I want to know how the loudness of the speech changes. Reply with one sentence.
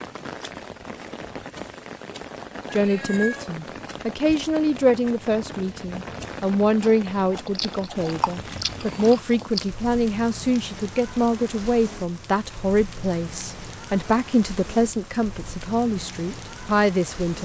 The volume of the speech stays about the same.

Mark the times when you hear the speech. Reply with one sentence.
The speech can be heard from 2.7 to 17.3 s.